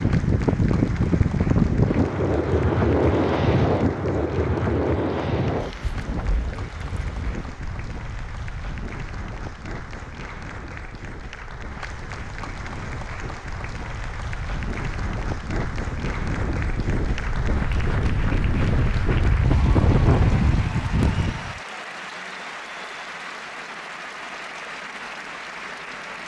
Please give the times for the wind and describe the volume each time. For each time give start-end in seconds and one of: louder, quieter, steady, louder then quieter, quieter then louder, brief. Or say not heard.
0.0-21.6 quieter then louder.